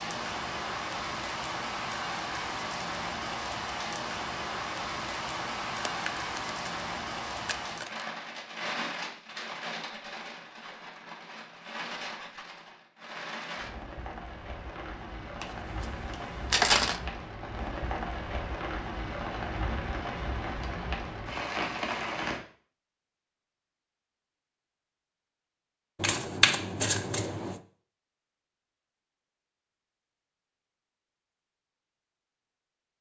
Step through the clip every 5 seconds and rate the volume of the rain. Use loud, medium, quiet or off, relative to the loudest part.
loud, loud, medium, loud, loud, off, off.